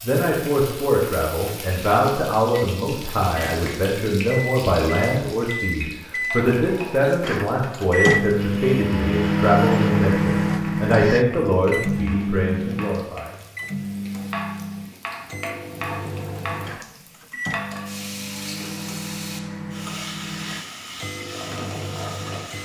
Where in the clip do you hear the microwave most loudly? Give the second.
10 s.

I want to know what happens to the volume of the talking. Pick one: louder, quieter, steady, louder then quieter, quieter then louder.
steady.